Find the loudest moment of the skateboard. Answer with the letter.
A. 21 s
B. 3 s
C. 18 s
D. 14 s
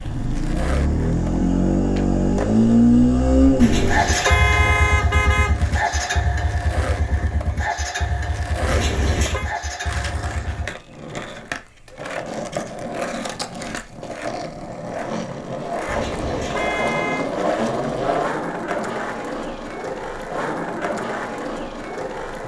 C.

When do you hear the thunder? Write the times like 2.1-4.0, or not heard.
not heard.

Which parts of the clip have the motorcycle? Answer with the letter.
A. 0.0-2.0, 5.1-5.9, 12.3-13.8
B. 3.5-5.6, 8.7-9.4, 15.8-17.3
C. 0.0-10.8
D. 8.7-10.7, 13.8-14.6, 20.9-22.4
C.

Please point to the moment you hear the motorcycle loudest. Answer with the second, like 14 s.
3 s.